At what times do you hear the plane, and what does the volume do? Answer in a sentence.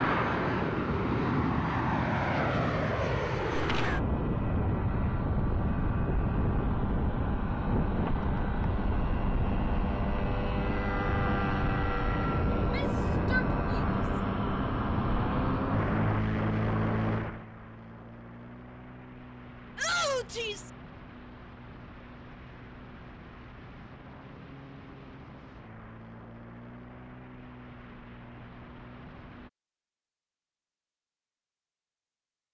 The plane can be heard from 0.0 to 29.5 s, getting quieter.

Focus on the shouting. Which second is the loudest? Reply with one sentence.
The loudest moment of the shouting is at 20 seconds.